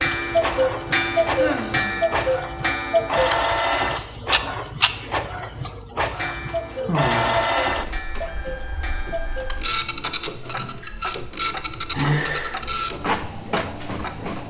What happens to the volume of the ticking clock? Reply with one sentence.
The loudness of the ticking clock goes down.